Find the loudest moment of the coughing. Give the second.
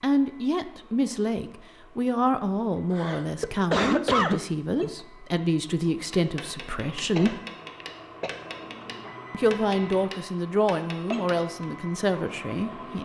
4 s.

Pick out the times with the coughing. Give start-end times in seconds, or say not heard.
2.9-4.9, 7.2-8.3.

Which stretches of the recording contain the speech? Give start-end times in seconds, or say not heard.
0.0-7.4, 9.3-12.9.